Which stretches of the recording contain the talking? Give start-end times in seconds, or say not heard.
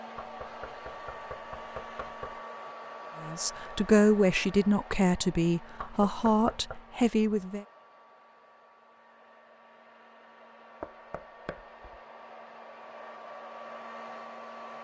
3.2-7.7.